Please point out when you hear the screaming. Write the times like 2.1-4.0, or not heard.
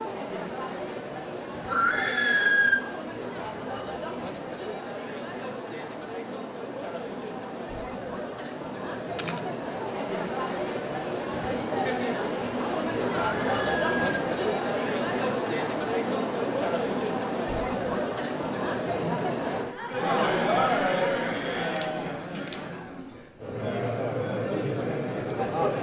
1.6-2.8, 13.2-14.2.